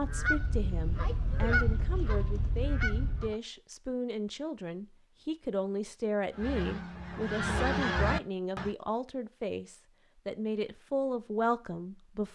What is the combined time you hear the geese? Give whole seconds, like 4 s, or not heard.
6 s.